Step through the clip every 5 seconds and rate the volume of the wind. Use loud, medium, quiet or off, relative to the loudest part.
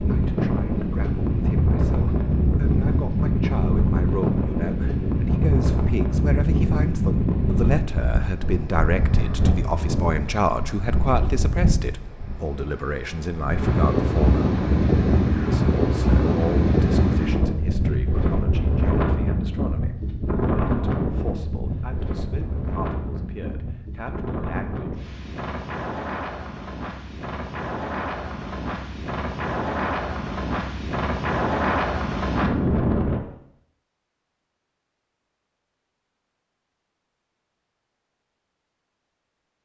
loud, loud, loud, loud, medium, medium, loud, off.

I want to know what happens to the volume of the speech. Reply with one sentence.
The loudness of the speech goes up, then down.